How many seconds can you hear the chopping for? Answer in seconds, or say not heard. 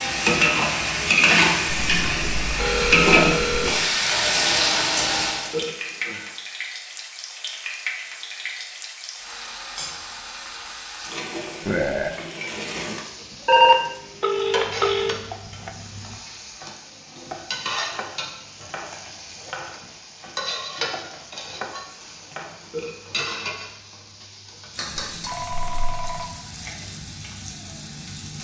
8 s.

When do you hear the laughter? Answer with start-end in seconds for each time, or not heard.
not heard.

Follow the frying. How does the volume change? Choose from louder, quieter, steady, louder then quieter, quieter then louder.
quieter.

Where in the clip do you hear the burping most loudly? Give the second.
12 s.